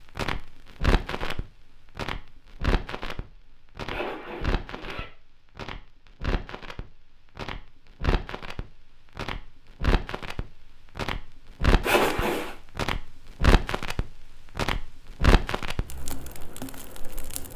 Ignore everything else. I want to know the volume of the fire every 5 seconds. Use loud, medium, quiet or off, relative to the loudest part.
loud, medium, loud, loud.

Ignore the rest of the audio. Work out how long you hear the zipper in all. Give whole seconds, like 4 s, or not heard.
2 s.